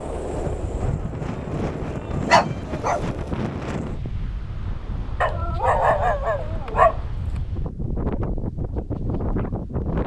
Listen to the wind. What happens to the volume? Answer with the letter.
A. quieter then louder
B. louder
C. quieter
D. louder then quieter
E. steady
A.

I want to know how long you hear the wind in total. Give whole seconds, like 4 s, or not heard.
10 s.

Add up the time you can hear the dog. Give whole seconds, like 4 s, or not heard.
3 s.